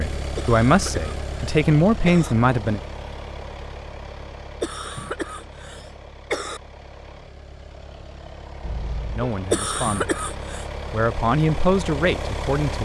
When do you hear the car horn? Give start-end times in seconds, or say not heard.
8.6-9.3.